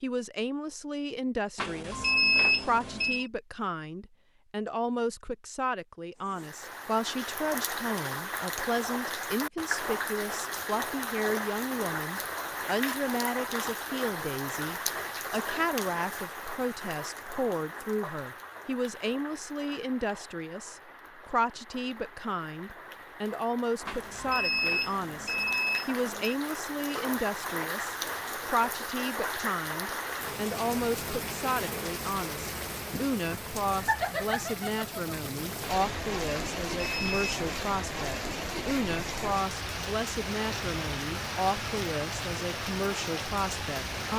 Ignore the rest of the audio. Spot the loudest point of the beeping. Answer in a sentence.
The volume of the beeping peaks at 2 seconds.